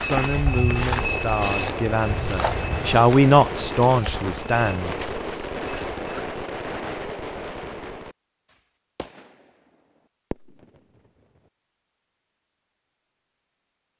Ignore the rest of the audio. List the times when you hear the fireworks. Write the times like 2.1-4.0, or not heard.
0.8-11.4.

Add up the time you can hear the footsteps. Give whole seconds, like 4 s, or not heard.
6 s.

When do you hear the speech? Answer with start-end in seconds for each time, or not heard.
0.0-5.0.